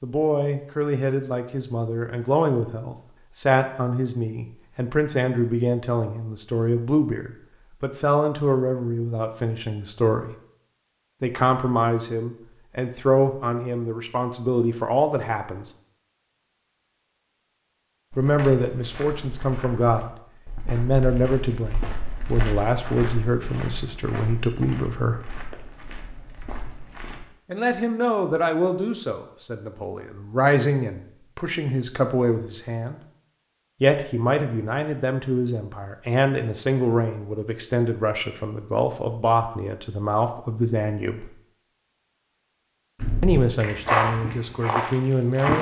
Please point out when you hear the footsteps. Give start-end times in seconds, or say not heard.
18.1-27.2, 43.0-45.5.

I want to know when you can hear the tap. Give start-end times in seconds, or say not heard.
not heard.